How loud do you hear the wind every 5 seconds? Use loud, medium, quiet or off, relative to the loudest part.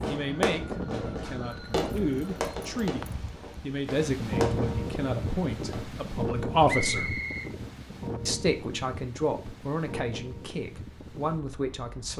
loud, loud, medium.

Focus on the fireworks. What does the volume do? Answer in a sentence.
The loudness of the fireworks goes down.